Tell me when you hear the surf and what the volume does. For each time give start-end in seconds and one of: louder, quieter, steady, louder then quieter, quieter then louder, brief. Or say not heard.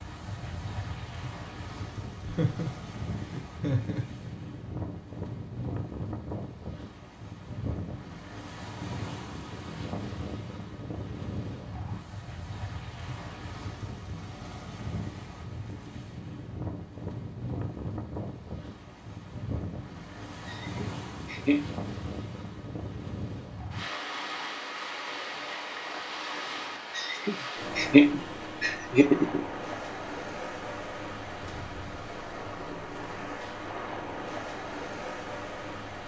0.0-36.0 steady.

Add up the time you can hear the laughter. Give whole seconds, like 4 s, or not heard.
6 s.